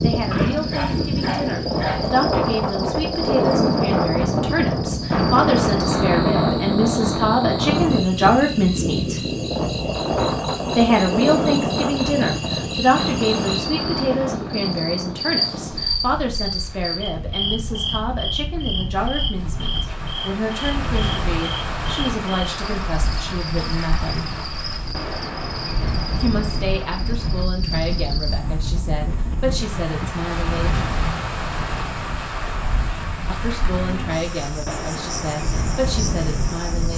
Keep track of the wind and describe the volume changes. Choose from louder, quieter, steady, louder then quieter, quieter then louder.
quieter.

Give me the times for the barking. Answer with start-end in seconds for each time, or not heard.
0.3-2.1.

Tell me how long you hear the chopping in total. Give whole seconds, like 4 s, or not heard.
not heard.